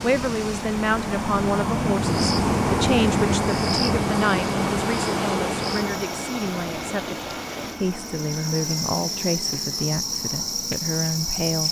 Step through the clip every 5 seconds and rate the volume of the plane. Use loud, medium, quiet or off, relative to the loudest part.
loud, medium, quiet.